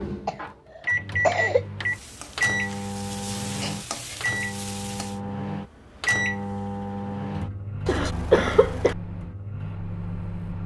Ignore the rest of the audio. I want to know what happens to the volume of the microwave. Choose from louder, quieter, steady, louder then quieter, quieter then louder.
quieter.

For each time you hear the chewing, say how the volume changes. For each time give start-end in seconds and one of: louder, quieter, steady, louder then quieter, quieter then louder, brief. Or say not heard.
not heard.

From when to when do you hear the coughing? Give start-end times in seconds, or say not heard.
0.2-1.6, 7.8-8.9.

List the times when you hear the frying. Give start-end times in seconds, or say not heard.
1.8-5.2.